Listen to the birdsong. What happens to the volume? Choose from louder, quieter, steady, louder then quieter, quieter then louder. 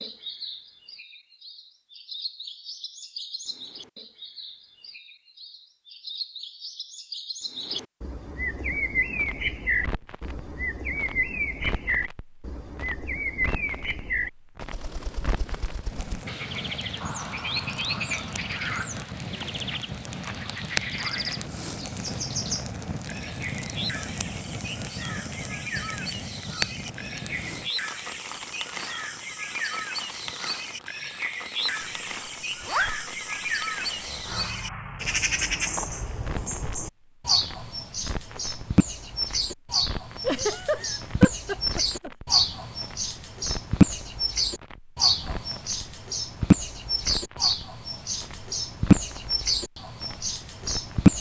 louder.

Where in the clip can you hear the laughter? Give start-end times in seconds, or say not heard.
17.0-18.5, 40.2-42.1.